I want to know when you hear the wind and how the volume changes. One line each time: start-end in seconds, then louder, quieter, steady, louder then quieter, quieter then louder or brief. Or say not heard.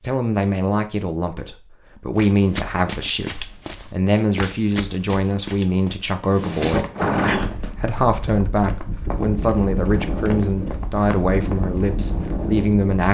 6.3-13.0 quieter then louder.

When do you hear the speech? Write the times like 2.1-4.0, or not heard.
0.0-6.9, 7.8-13.0.